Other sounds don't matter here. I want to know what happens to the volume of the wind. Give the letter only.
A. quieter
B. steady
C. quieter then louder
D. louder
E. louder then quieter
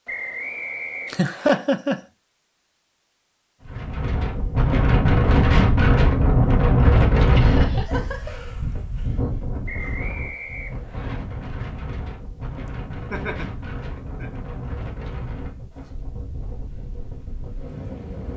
A.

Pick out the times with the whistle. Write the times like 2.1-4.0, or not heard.
0.1-1.6, 9.7-11.2.